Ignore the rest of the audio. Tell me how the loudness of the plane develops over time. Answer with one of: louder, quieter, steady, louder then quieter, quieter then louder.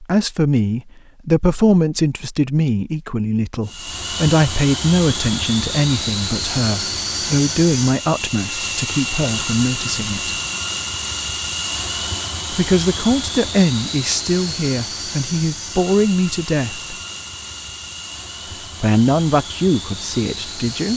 quieter.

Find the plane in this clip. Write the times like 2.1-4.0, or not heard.
3.6-20.9.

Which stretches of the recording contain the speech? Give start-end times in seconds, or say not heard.
0.0-10.3, 12.5-16.9, 18.8-20.9.